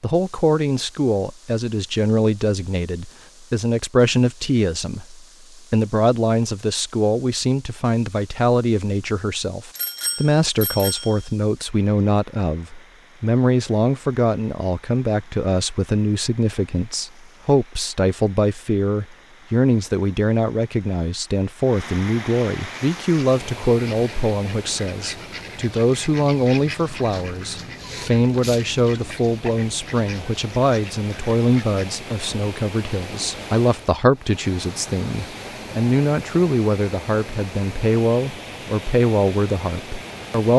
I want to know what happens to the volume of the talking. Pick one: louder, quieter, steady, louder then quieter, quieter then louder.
steady.